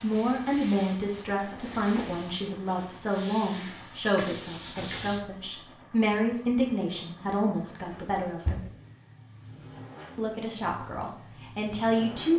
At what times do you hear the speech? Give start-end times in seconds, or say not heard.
0.0-8.6, 10.2-12.3.